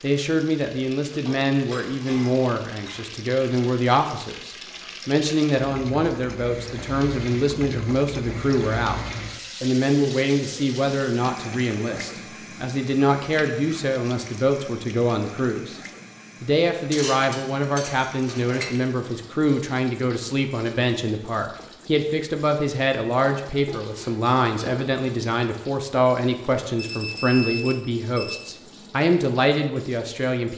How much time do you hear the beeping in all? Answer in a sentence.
You can hear the beeping for 2 seconds altogether.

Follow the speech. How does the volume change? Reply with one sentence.
The loudness of the speech stays about the same.